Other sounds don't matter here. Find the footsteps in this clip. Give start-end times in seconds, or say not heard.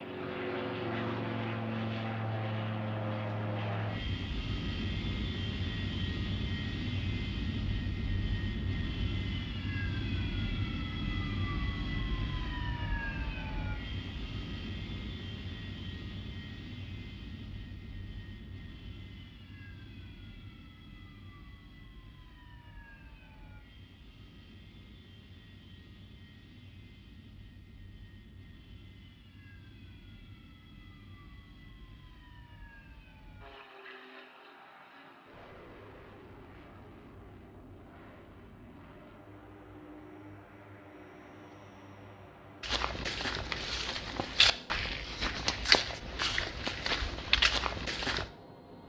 42.6-48.2.